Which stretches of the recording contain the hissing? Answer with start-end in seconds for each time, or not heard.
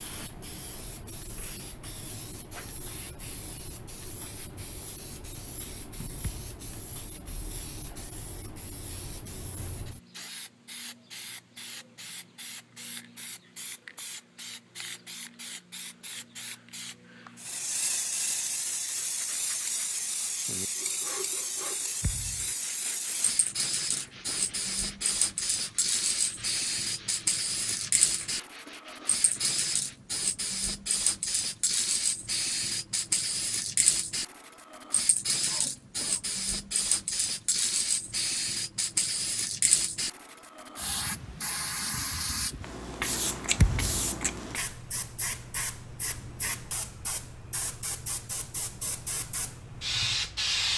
0.0-50.7.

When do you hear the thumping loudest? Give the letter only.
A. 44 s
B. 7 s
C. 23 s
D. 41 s
A.